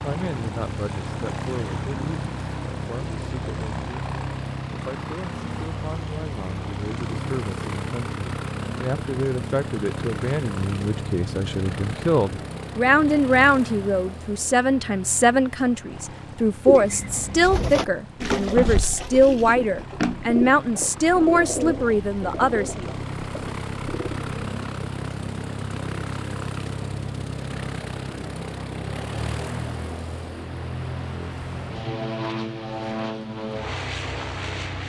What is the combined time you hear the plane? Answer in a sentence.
You can hear the plane for 35 seconds altogether.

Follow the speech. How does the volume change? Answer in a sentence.
The loudness of the speech goes up.